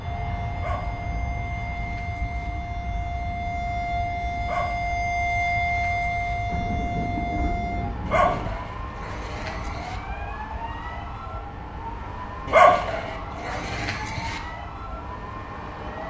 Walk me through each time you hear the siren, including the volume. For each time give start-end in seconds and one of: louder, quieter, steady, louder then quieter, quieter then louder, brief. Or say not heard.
0.0-16.0 louder then quieter.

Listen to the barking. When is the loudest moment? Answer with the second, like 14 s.
13 s.